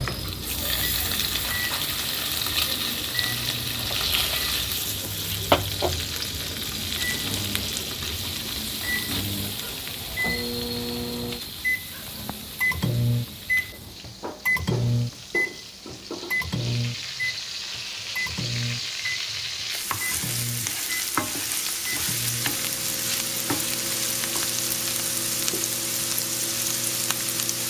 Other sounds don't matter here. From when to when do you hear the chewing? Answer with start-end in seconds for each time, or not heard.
not heard.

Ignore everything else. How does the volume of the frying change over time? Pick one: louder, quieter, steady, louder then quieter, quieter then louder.
quieter then louder.